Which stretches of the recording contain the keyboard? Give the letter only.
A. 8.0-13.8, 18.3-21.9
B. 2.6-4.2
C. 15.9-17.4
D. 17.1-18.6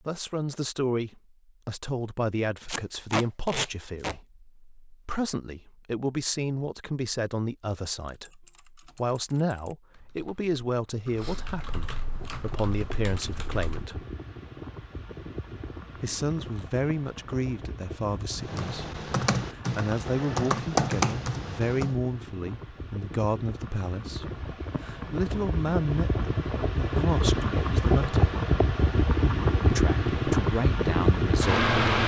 A.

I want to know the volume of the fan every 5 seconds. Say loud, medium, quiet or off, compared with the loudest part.
off, off, quiet, quiet, quiet, loud, loud.